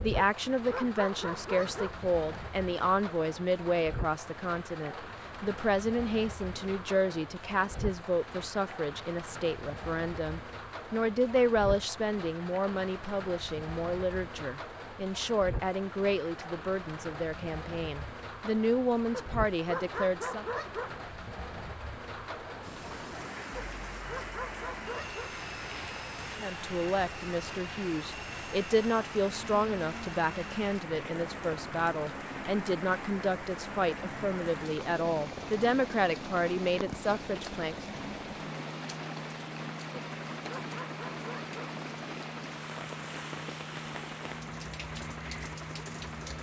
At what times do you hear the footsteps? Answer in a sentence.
The footsteps can't be heard in this clip.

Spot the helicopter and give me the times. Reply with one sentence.
The helicopter can be heard from 22.6 to 46.3 s.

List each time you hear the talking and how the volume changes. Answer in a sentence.
You can hear the talking from 0.0 to 20.4 s, at a steady volume; and from 26.4 to 37.9 s, at a steady volume.